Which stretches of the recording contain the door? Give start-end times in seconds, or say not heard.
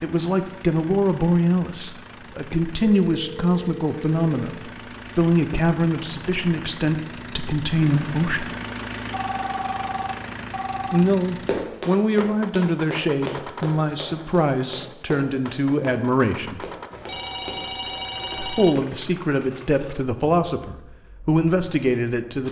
not heard.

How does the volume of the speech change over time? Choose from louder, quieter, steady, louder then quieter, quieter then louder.
steady.